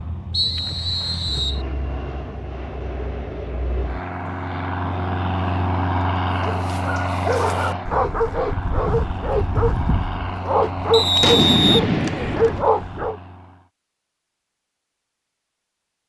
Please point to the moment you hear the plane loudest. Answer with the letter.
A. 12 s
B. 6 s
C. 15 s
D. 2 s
B.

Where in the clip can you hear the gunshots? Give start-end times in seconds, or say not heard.
11.2-12.7.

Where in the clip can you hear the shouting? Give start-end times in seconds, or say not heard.
not heard.